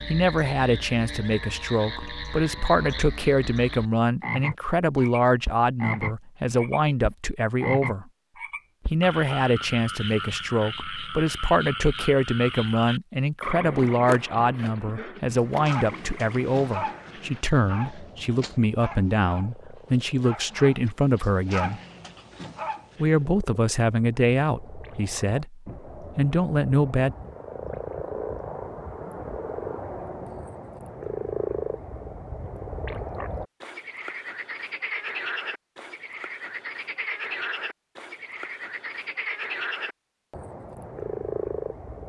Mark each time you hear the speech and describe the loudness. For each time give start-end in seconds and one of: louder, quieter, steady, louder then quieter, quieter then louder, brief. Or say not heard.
0.1-8.1 steady
8.9-21.8 steady
23.0-27.1 quieter then louder.